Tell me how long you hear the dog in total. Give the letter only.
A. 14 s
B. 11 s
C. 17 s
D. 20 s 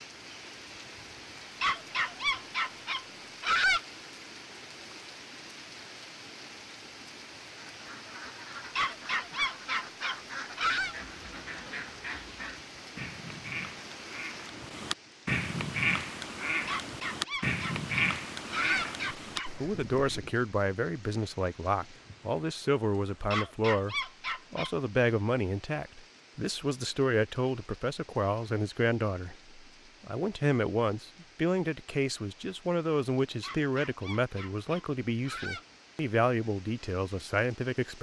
B.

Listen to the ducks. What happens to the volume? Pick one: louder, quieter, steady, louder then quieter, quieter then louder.
louder.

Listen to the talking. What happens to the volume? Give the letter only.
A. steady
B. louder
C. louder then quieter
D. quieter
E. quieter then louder
A.